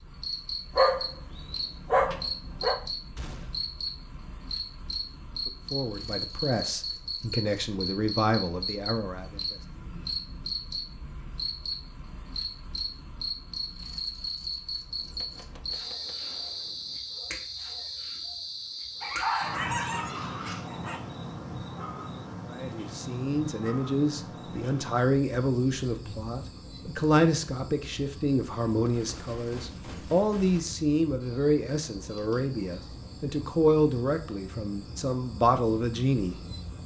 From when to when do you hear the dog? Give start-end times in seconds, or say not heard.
0.8-2.8, 19.0-21.0.